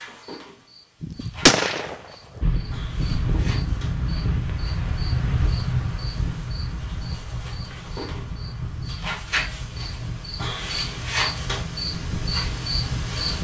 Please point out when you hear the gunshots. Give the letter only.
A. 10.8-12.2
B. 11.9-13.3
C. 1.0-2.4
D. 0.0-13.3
C.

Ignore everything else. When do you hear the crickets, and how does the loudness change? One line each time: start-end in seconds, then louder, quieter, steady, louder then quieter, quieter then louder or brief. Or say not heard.
0.0-13.3 louder.